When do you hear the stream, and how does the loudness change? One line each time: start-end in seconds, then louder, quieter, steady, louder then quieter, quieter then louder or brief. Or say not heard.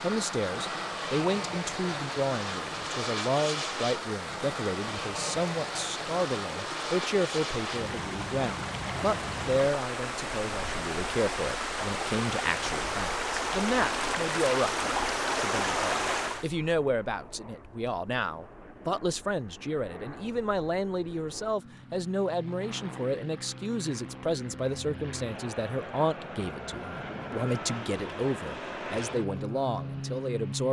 0.0-16.4 louder.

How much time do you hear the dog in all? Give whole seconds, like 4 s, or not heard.
not heard.